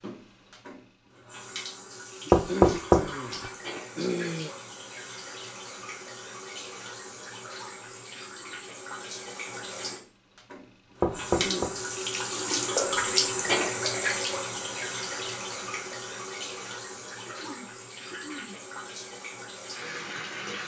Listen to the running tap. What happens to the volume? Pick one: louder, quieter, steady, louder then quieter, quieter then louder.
louder then quieter.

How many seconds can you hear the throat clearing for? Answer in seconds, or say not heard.
4 s.